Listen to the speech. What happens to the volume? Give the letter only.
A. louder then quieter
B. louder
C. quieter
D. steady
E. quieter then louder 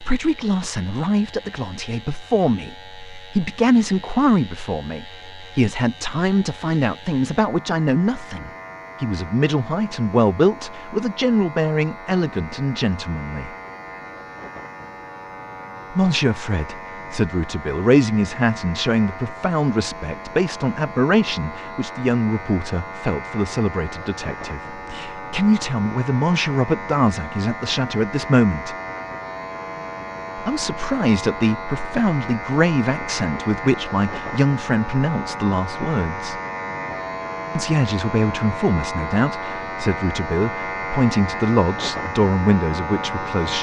D.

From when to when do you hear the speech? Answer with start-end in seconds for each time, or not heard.
0.0-13.5, 15.9-28.8, 30.4-36.4, 37.5-43.5.